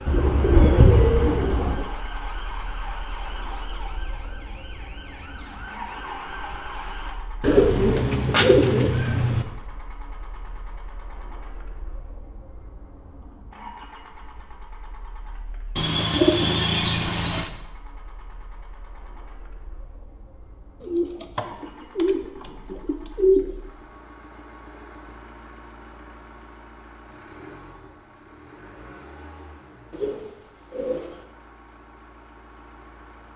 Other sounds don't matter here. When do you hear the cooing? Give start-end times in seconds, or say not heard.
0.1-1.9, 7.4-9.4, 15.8-17.5, 20.8-23.5, 29.9-31.2.